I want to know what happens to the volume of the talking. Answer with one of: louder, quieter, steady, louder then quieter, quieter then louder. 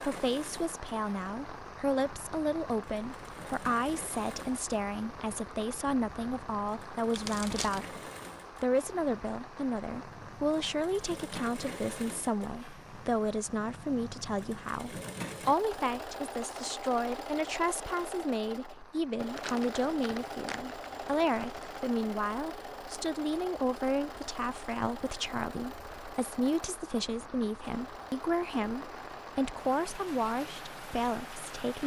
steady.